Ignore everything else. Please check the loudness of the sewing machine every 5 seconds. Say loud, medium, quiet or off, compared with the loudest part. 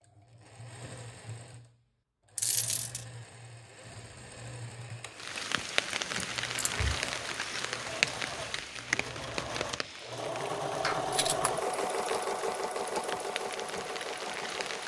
quiet, medium, loud.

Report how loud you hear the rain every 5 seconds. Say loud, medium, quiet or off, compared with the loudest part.
off, loud, medium.